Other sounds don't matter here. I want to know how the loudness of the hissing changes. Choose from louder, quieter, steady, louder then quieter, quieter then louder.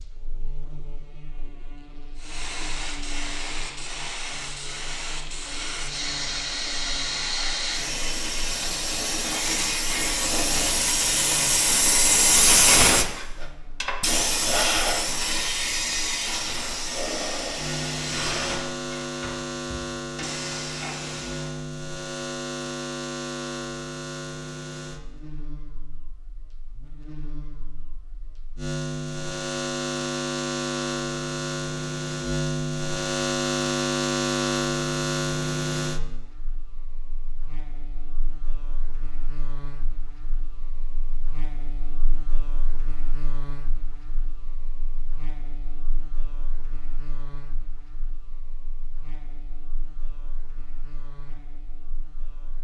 louder then quieter.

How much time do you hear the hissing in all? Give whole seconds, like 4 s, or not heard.
19 s.